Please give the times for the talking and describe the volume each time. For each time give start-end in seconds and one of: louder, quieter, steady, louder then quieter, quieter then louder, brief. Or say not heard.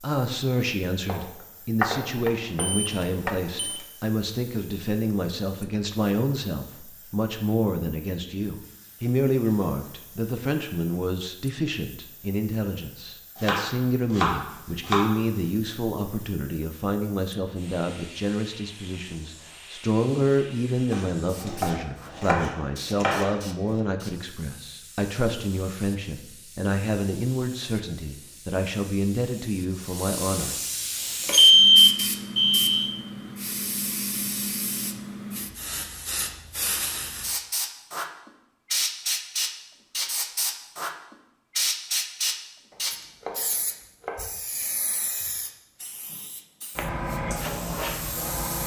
0.0-30.6 steady.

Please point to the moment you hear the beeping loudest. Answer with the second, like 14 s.
32 s.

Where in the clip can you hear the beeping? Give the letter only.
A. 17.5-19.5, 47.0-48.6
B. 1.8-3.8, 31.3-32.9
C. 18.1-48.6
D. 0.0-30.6
B.